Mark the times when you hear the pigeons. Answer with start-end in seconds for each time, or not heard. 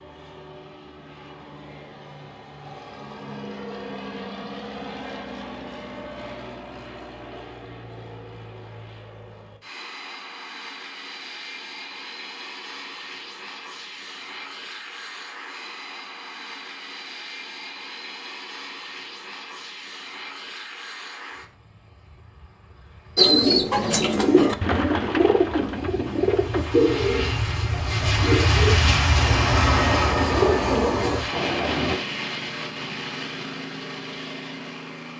23.1-31.9.